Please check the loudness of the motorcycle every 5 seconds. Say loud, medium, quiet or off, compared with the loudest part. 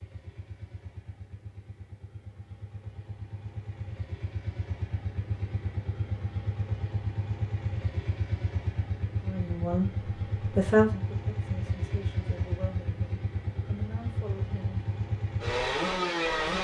quiet, medium, medium, loud.